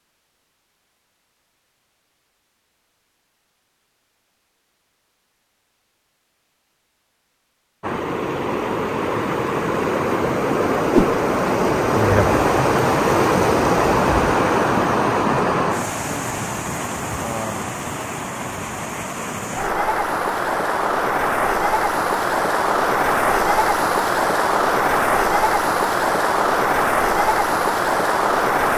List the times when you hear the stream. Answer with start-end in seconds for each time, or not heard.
7.8-28.7.